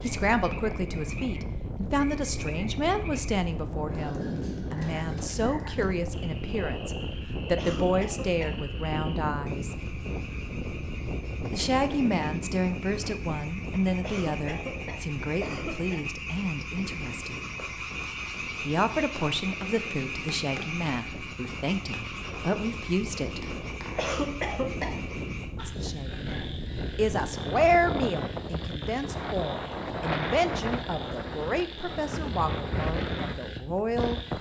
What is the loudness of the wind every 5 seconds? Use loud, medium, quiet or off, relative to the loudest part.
loud, loud, loud, medium, medium, loud, loud.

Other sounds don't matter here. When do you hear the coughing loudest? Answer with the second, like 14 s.
24 s.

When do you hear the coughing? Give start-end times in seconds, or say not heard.
7.5-8.6, 14.0-16.1, 23.9-24.9.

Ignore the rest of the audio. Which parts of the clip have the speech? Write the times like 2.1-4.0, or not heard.
0.0-9.8, 11.5-17.4, 18.6-23.4, 25.6-34.3.